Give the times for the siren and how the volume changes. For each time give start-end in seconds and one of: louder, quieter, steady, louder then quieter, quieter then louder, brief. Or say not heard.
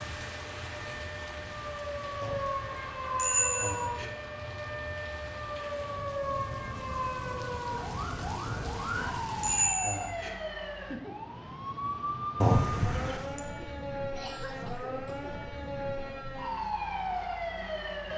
0.0-18.1 steady.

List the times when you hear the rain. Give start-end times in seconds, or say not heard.
0.0-9.8.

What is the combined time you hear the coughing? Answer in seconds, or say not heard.
2 s.